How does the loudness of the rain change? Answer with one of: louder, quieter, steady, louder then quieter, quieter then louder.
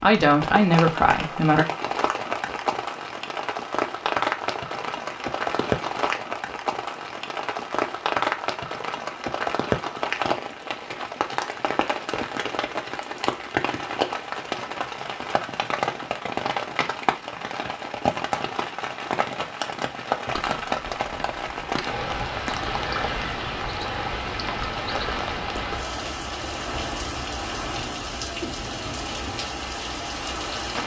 steady.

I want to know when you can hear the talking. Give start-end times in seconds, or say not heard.
0.0-1.6.